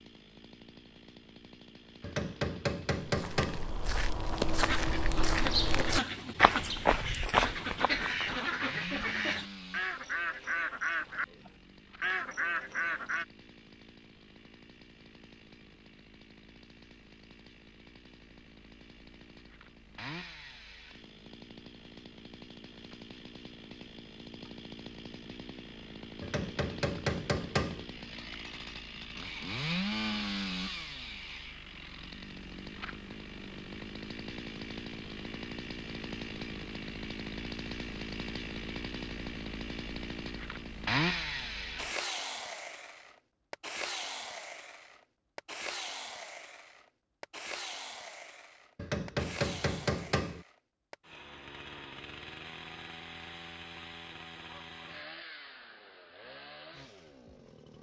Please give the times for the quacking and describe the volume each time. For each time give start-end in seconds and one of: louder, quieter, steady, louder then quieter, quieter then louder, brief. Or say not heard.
4.5-13.2 steady.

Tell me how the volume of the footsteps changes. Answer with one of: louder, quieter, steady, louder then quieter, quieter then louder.
louder.